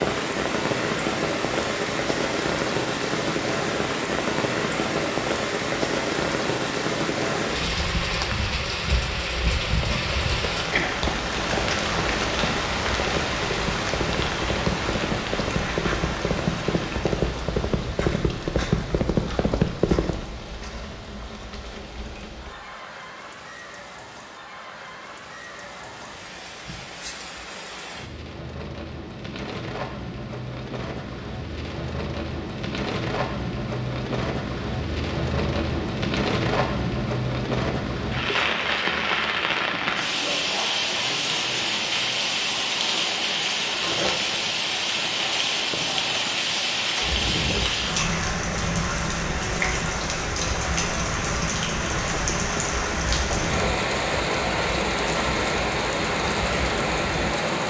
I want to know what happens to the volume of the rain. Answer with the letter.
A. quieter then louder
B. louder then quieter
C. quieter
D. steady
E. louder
A.